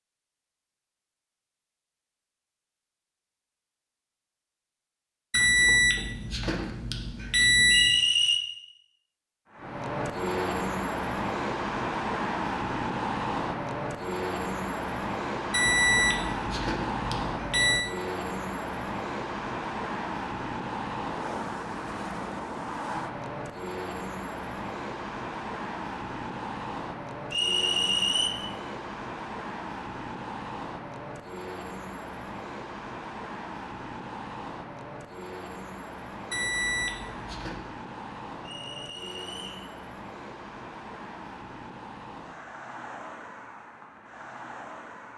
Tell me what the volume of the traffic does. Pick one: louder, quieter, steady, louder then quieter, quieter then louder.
quieter.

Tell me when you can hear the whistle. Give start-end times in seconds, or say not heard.
7.7-8.4, 27.3-28.3, 38.4-39.6.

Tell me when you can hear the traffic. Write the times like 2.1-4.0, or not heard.
9.5-45.1.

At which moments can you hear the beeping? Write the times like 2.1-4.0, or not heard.
5.3-8.0, 15.5-17.9, 36.3-37.6.